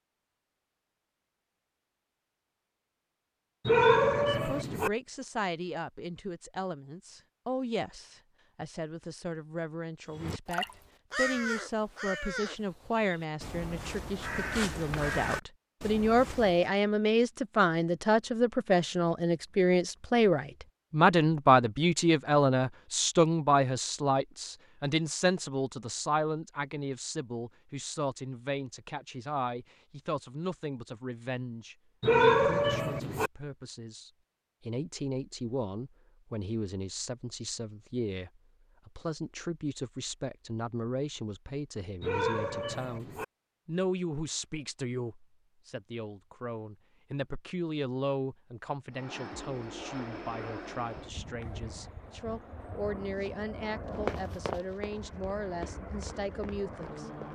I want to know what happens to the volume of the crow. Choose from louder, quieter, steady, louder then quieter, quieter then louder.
quieter then louder.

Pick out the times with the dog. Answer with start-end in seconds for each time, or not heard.
3.6-4.9, 32.0-33.3, 42.0-43.2.